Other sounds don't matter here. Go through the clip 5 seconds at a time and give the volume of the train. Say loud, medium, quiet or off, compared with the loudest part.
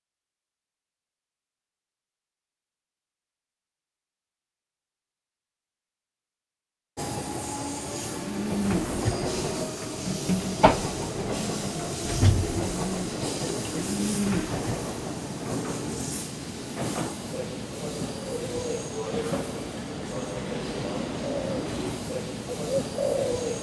off, loud, loud, loud, loud.